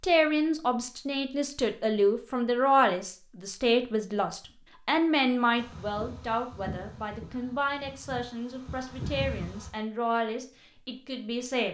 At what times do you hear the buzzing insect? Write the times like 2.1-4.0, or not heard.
5.5-9.7.